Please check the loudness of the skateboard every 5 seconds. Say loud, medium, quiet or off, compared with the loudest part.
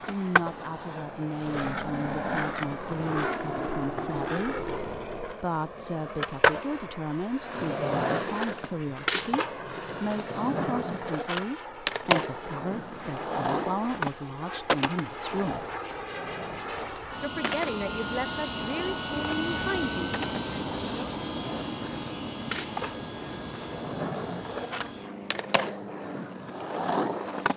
loud, loud, loud, medium, medium, loud.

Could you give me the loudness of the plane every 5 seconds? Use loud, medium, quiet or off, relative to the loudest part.
medium, medium, medium, loud, loud, medium.